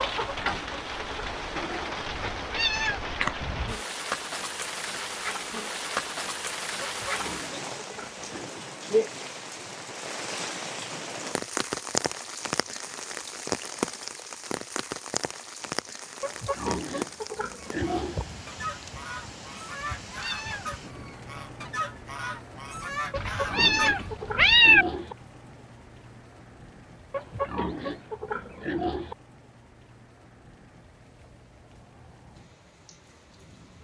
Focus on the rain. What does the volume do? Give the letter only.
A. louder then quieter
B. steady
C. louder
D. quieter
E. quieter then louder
D.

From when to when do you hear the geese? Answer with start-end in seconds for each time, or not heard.
17.6-24.1.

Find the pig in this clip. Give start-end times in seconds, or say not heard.
0.2-2.0, 6.8-8.5, 16.2-18.2, 23.1-25.1, 27.1-29.1.